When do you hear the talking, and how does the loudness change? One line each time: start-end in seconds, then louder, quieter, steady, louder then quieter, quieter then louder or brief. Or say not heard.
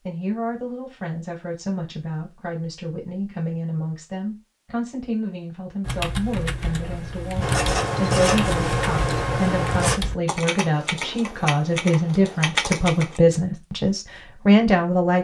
0.1-15.1 louder.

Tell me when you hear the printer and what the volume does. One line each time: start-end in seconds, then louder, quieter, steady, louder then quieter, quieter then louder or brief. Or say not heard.
not heard.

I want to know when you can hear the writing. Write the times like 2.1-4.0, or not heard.
7.4-10.0.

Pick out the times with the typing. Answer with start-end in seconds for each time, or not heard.
5.8-13.2.